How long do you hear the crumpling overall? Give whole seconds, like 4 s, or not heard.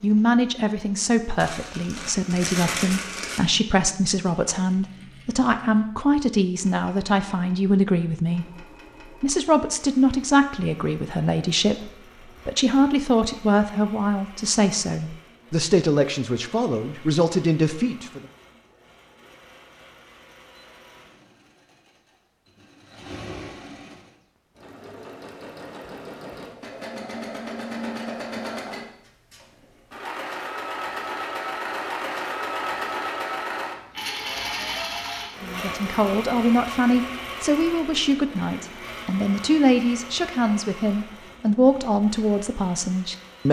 2 s.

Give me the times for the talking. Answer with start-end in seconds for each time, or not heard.
0.0-18.2, 35.4-43.4.